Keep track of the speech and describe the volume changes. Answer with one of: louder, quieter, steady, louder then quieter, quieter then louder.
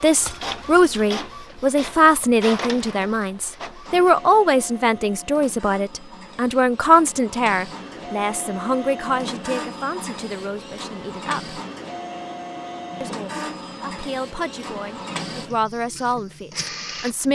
quieter then louder.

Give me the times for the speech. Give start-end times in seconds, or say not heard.
0.0-11.6, 13.0-17.3.